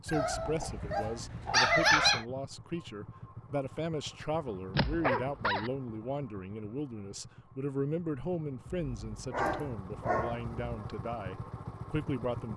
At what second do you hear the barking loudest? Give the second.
2 s.